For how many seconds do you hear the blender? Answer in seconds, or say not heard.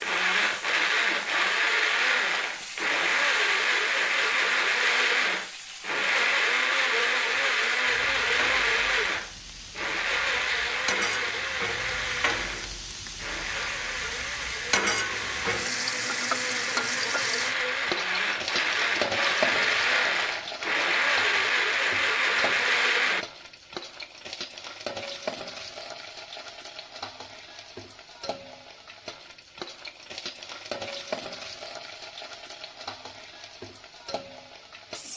23 s.